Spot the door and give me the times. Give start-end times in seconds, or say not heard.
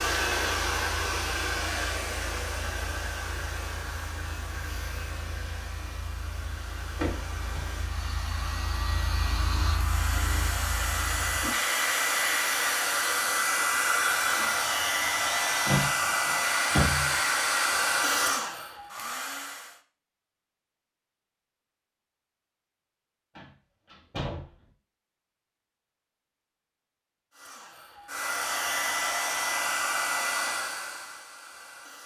7.0-7.7, 15.7-17.1, 23.4-24.5.